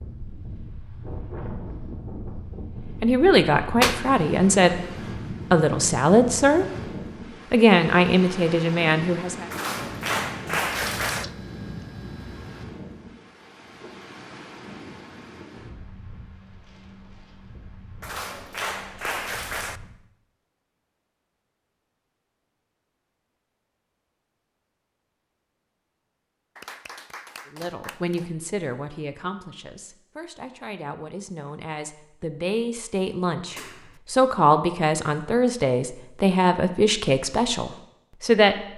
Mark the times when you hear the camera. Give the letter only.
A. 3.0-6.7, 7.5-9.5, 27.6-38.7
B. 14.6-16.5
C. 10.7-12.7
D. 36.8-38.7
C.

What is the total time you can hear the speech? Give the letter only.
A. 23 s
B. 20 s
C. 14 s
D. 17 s
D.